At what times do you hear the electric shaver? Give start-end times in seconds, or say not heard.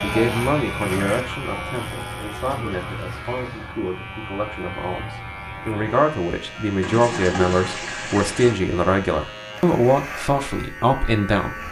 0.0-11.6.